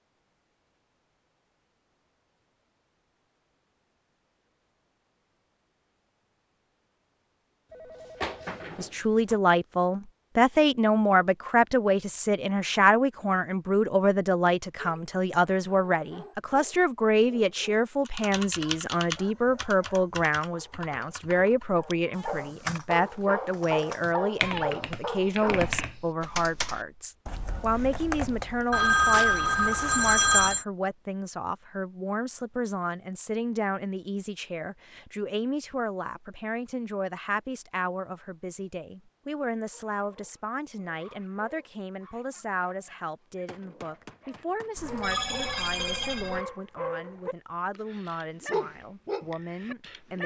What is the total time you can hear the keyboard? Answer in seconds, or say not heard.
11 s.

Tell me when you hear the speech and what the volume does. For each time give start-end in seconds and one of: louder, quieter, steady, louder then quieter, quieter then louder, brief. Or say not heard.
8.8-50.2 quieter.